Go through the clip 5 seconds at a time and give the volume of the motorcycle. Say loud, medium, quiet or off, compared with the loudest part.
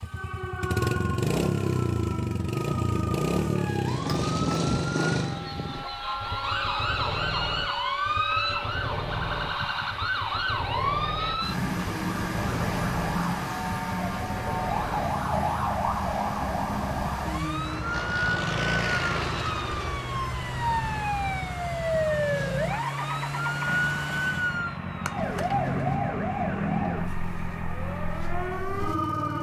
loud, medium, medium, medium, medium, medium.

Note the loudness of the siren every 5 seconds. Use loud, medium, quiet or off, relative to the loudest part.
medium, loud, loud, loud, loud, loud.